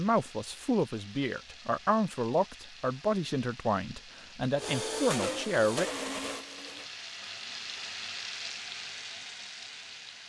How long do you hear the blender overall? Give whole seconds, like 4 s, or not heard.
2 s.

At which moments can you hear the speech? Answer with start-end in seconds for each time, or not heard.
0.0-5.8.